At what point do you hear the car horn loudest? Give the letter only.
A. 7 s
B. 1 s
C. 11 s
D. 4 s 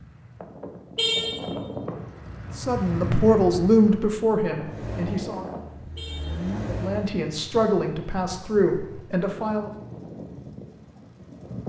B.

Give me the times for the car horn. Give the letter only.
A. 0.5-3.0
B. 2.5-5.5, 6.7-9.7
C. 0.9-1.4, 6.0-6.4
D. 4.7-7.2
C.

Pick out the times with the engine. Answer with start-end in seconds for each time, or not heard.
4.7-7.2.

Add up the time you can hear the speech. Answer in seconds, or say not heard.
6 s.